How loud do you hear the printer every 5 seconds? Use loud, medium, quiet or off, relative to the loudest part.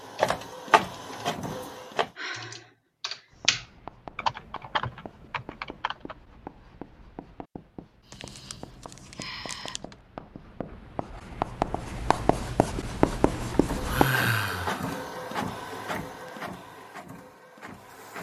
loud, off, loud, medium.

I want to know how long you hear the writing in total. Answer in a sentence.
The writing can be heard for 11 seconds in total.